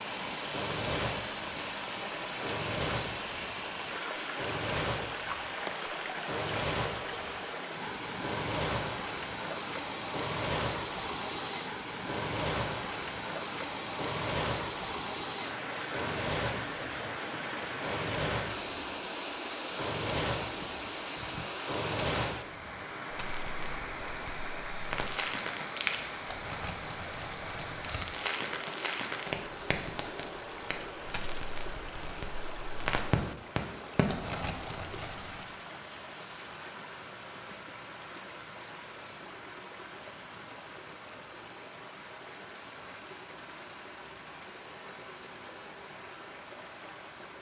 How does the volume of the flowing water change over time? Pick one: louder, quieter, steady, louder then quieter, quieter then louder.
quieter.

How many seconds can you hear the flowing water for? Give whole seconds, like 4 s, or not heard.
47 s.